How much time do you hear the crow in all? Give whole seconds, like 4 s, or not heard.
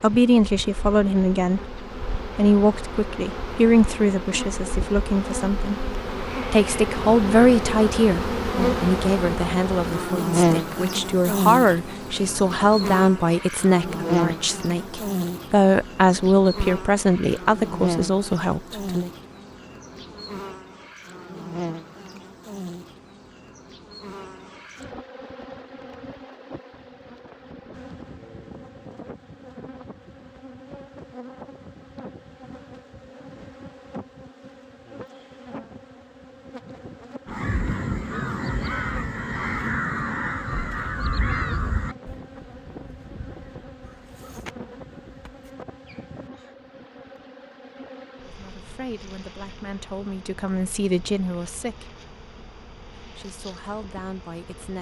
9 s.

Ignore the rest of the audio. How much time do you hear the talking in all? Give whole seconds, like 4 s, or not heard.
24 s.